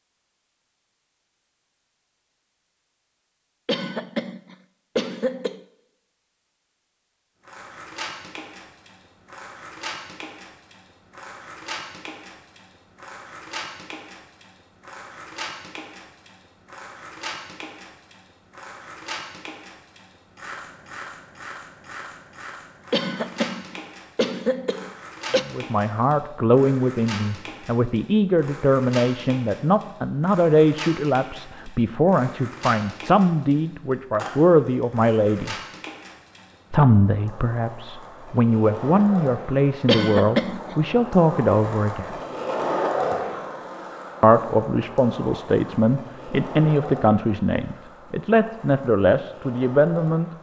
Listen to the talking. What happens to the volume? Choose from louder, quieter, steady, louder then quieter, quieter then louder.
steady.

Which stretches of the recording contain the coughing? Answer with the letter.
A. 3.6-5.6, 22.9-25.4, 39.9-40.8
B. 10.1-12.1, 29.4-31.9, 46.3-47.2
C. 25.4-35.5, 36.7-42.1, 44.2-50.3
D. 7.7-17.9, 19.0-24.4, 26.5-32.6
A.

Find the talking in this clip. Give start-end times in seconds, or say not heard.
25.4-35.5, 36.7-42.1, 44.2-50.3.